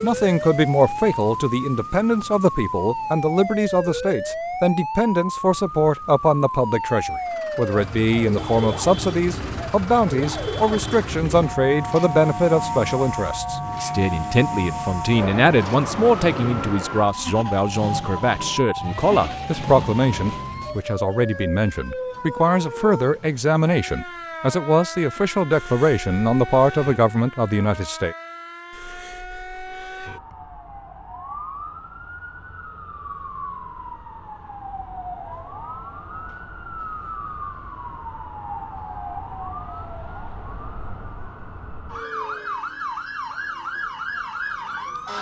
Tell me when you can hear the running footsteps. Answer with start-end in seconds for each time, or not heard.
not heard.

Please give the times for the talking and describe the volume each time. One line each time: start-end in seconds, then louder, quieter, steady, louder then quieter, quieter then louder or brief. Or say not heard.
0.0-28.1 steady.